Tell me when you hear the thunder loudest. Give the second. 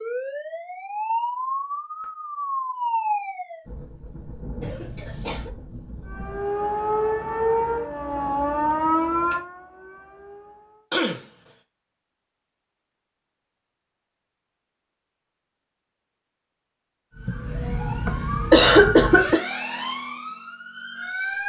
5 s.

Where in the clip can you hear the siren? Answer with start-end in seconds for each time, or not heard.
0.0-3.6, 6.0-10.8, 17.1-21.4.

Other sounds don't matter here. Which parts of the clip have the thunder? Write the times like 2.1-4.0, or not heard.
3.6-6.6.